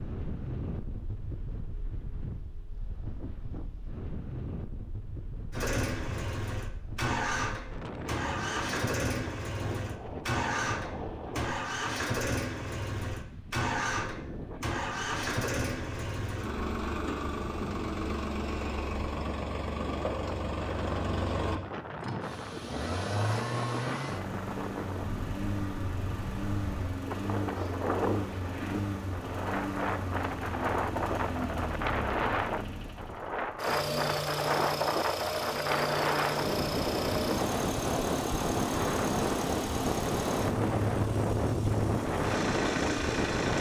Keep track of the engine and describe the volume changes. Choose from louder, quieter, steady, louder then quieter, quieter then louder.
steady.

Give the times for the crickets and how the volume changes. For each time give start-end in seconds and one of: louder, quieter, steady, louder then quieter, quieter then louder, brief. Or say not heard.
not heard.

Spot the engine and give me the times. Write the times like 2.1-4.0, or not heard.
5.5-43.5.